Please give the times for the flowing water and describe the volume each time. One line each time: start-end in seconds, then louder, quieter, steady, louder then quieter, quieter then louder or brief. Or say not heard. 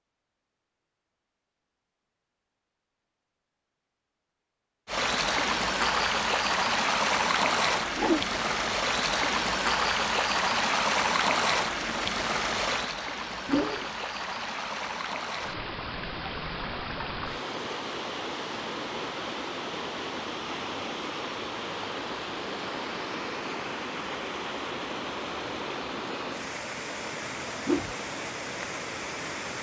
4.8-29.5 quieter.